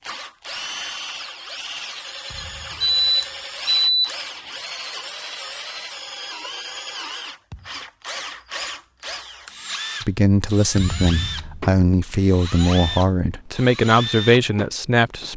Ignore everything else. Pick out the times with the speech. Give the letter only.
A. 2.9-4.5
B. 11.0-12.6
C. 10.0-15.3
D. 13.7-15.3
C.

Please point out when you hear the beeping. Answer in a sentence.
You can hear the beeping from 2.9 to 4.5 s.